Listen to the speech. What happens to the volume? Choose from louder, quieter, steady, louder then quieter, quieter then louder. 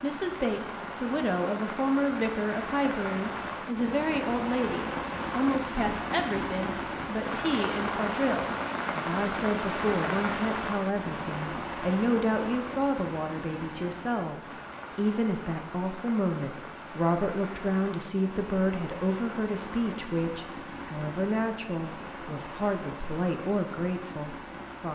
steady.